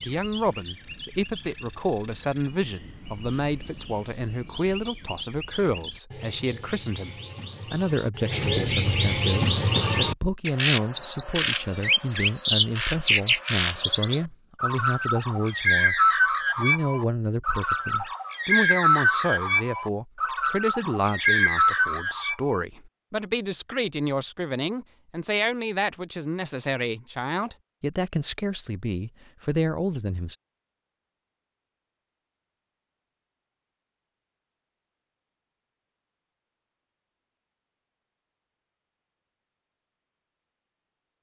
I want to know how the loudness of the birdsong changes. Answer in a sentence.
The loudness of the birdsong goes up.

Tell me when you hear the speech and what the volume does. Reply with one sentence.
The speech can be heard from 0.0 to 30.4 s, at a steady volume.